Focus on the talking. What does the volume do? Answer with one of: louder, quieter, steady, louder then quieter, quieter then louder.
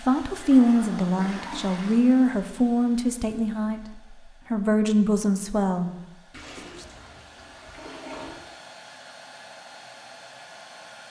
quieter then louder.